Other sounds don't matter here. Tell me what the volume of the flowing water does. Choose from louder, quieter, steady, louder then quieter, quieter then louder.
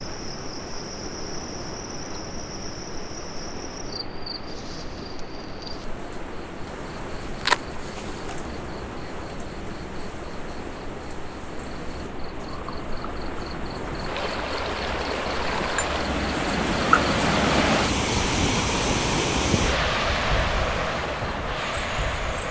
louder.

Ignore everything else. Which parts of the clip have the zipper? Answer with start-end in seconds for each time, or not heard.
7.2-8.6.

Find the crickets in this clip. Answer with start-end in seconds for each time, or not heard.
0.0-22.4.